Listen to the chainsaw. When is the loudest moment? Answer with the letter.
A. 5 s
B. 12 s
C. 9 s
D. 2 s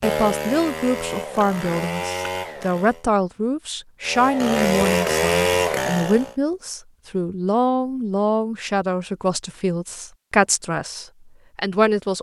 A.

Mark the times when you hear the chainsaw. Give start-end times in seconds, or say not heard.
0.0-3.0, 4.0-6.3.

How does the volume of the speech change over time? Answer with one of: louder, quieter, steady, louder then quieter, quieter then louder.
steady.